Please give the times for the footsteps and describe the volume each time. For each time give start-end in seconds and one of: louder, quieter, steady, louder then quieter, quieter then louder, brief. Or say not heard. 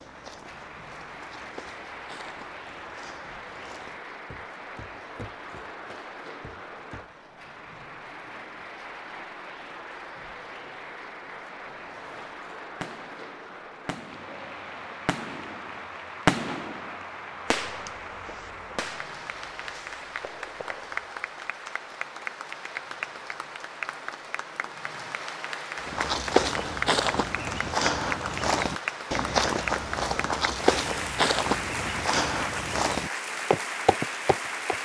0.0-7.2 quieter
25.8-34.7 steady.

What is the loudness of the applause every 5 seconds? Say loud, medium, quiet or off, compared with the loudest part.
medium, medium, medium, medium, loud, loud, loud.